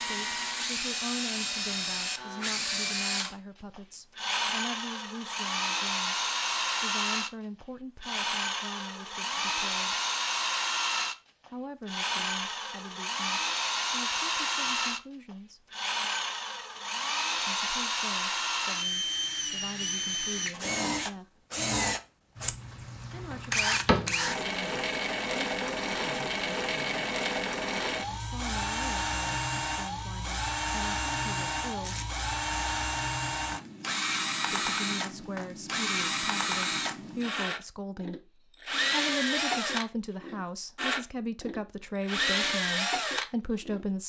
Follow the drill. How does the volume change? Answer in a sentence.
The loudness of the drill stays about the same.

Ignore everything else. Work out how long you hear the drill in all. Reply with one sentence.
You can hear the drill for 44 seconds altogether.